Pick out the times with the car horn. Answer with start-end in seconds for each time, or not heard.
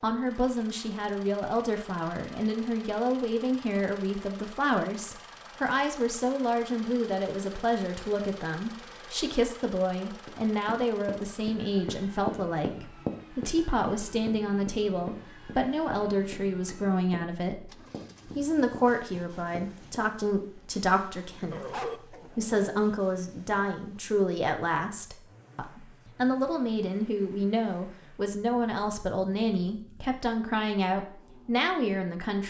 not heard.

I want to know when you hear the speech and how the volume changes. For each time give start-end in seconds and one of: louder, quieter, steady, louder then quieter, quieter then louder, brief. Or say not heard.
0.0-17.7 steady
18.4-32.4 steady.